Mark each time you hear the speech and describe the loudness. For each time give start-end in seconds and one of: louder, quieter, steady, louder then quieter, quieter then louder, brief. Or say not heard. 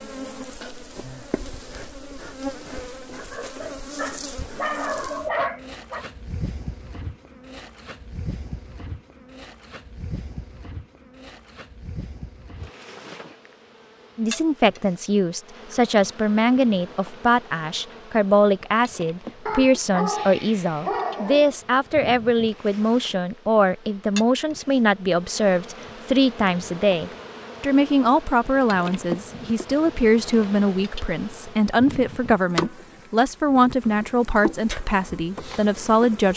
14.2-36.3 steady.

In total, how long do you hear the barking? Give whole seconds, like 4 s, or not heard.
5 s.